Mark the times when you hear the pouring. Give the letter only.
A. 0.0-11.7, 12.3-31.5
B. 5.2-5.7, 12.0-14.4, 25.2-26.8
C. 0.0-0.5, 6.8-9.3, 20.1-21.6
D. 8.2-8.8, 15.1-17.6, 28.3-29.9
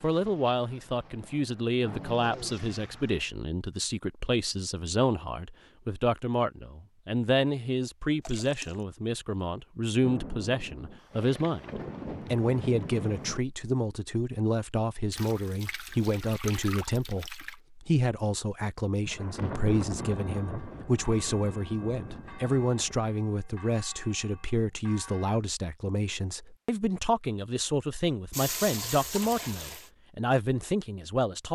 D.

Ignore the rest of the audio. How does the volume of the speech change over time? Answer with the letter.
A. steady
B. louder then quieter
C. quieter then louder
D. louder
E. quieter
A.